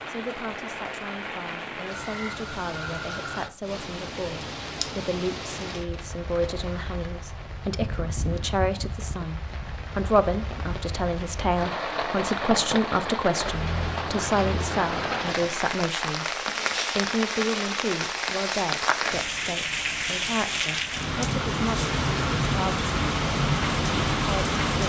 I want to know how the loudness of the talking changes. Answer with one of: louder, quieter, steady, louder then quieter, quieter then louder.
louder then quieter.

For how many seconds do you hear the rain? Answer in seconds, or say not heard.
25 s.